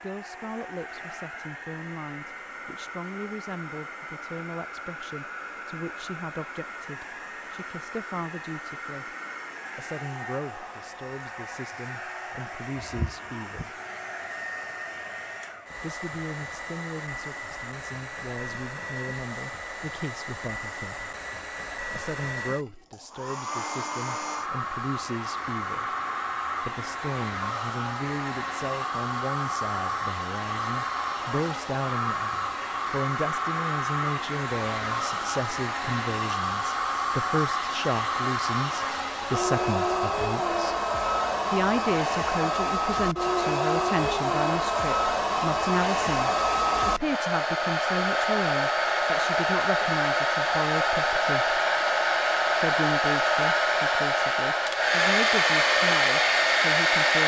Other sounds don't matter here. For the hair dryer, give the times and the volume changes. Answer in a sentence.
The hair dryer can be heard from 0.0 to 57.2 s, getting louder.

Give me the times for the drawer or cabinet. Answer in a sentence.
You can't hear the drawer or cabinet here.